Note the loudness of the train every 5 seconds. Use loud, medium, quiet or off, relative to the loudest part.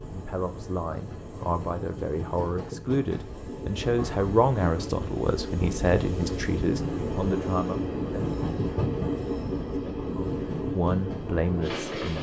medium, loud, loud.